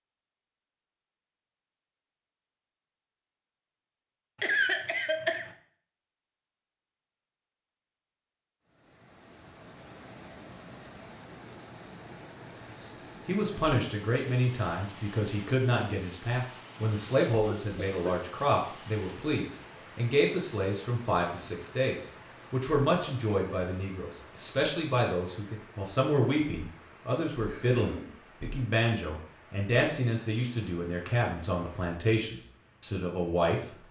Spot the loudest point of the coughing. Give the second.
5 s.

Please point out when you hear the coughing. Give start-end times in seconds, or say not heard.
4.4-5.5, 17.4-18.2, 27.4-28.1.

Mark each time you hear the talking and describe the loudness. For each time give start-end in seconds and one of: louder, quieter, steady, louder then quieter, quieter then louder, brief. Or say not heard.
12.8-33.8 steady.